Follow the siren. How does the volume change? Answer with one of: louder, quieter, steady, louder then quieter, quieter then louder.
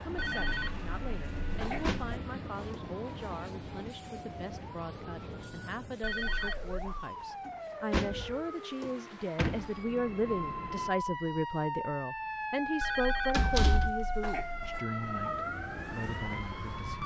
louder.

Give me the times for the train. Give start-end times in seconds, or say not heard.
0.0-10.9.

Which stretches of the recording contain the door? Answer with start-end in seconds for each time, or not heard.
1.4-2.8, 7.5-9.7, 13.3-13.9.